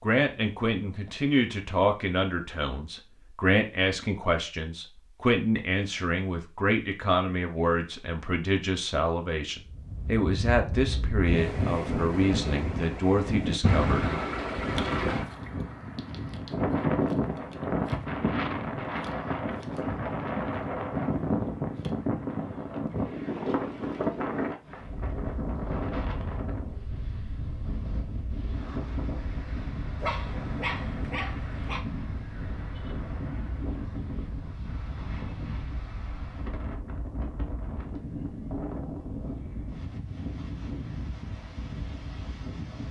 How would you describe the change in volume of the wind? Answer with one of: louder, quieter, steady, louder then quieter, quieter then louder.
quieter.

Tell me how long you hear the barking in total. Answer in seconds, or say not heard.
2 s.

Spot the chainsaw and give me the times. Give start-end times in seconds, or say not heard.
not heard.